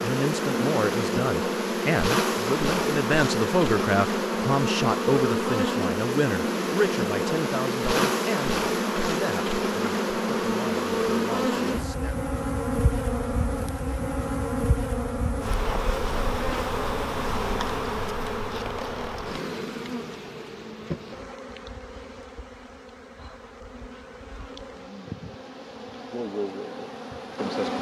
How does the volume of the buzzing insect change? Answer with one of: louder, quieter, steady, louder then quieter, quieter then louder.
quieter.